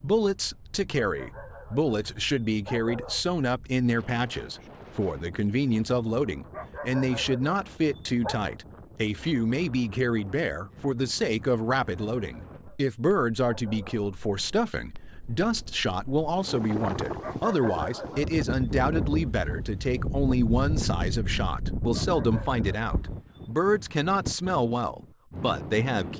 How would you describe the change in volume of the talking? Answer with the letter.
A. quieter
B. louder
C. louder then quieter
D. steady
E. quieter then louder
D.